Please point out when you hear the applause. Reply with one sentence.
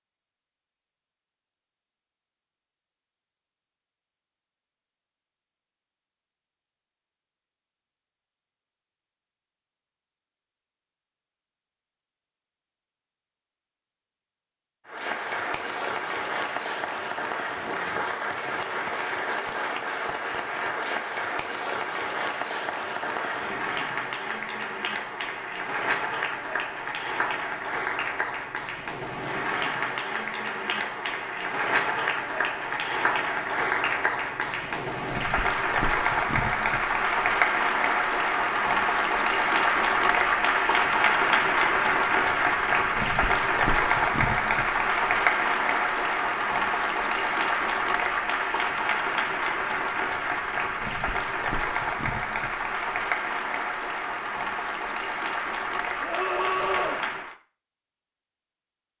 The applause can be heard from 14.8 to 57.4 s.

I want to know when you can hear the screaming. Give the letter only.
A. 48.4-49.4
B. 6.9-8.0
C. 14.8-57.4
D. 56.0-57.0
D.